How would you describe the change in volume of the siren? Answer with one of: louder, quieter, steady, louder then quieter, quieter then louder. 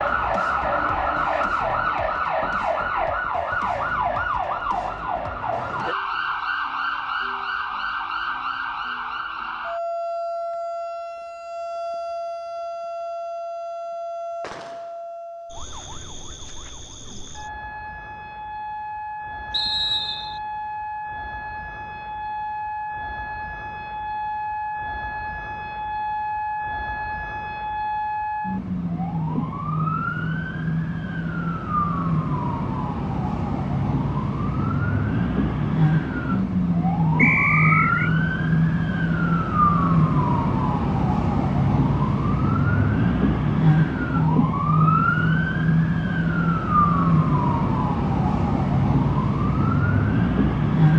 quieter then louder.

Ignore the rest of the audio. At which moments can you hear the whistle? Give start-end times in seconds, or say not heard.
19.5-20.4, 37.1-38.1.